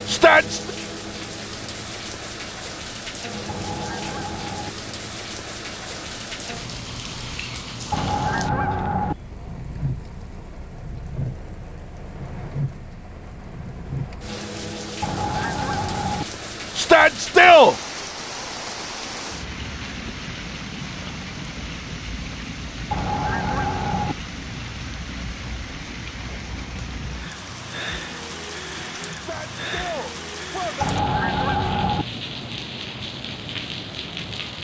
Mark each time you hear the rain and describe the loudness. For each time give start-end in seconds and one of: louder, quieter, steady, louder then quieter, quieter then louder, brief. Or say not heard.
0.0-34.6 steady.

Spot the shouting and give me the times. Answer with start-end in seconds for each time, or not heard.
0.1-0.7, 16.8-17.8, 29.1-31.0.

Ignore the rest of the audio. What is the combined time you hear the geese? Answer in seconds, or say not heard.
6 s.